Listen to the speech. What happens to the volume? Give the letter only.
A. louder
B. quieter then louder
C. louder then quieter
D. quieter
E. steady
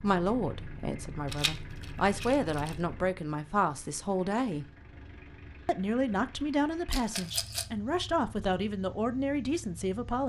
E.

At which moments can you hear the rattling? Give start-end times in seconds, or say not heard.
1.2-2.8, 6.9-7.7.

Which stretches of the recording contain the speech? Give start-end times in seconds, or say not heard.
0.0-4.7, 5.7-10.2.